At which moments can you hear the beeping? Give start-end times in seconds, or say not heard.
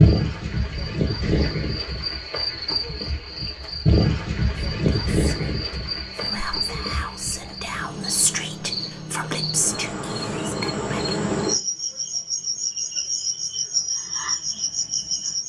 not heard.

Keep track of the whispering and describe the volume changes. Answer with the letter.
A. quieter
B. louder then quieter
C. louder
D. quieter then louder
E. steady
B.